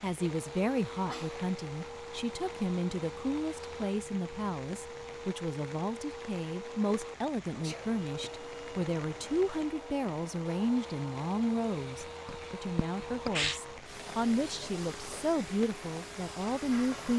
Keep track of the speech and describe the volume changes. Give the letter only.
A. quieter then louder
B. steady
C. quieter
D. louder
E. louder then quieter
B.